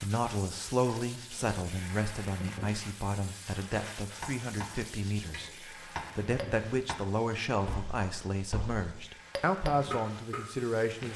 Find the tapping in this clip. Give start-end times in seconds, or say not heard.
3.9-11.1.